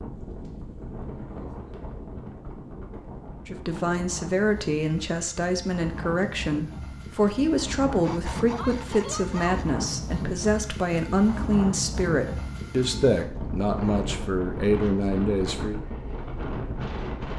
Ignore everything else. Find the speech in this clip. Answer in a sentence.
The speech can be heard from 3.5 to 15.8 s.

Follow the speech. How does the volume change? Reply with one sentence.
The volume of the speech stays about the same.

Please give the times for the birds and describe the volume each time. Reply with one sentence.
You can't hear the birds here.